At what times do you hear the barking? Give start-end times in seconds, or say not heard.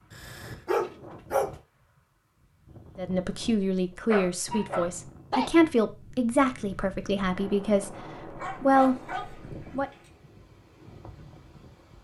0.1-1.6, 4.1-5.5, 8.3-10.1.